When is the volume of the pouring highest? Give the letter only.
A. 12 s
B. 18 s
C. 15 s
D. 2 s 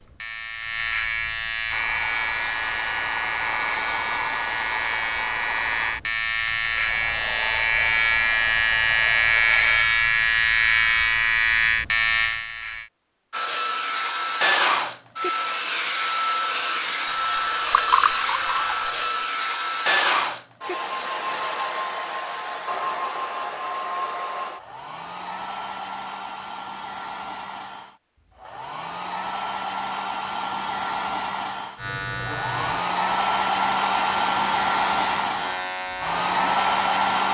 B.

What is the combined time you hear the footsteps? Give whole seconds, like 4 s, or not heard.
not heard.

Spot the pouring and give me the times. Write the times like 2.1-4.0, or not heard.
17.2-19.1.